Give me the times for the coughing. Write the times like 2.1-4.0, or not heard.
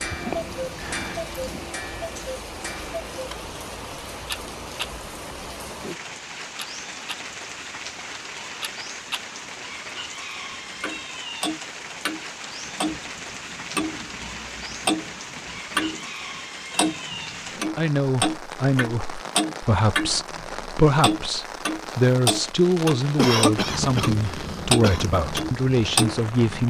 23.1-25.1.